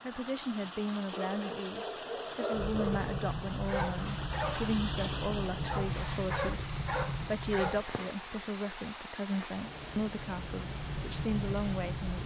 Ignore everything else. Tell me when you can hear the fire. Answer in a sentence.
The fire can be heard from 2.5 to 12.2 s.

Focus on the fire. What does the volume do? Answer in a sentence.
The loudness of the fire goes down, then up.